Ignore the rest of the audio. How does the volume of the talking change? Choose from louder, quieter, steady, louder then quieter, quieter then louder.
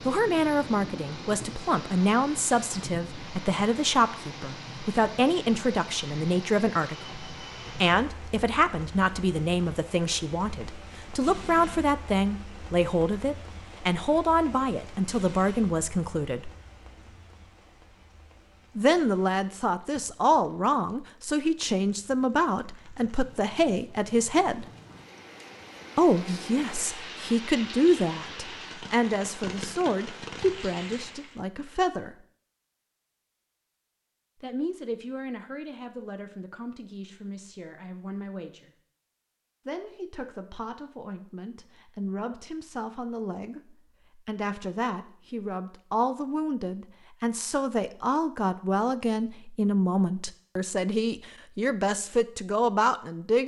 quieter then louder.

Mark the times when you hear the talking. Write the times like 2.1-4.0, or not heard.
0.1-16.5, 18.8-24.6, 25.9-32.1, 34.4-38.7, 39.6-53.4.